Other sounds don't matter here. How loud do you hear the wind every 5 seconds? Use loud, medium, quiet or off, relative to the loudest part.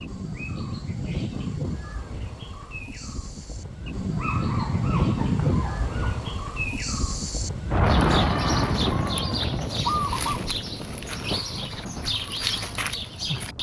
medium, loud, medium.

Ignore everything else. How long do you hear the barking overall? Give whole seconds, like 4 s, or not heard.
2 s.